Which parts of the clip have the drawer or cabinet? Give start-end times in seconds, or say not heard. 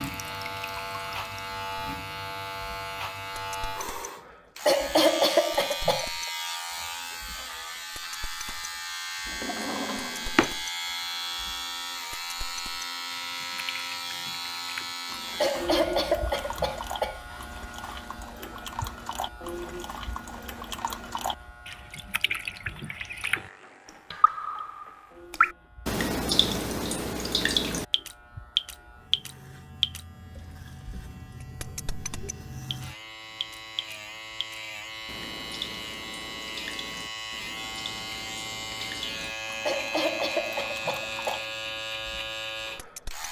9.2-10.6.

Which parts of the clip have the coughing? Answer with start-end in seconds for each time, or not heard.
4.7-6.0, 15.4-17.2, 39.6-41.5.